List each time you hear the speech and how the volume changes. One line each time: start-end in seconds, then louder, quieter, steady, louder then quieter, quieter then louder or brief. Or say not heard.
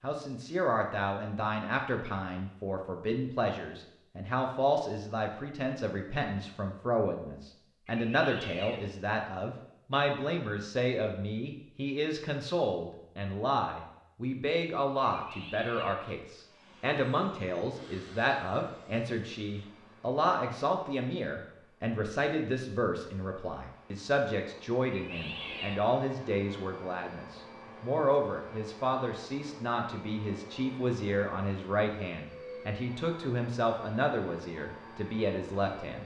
0.0-36.0 steady.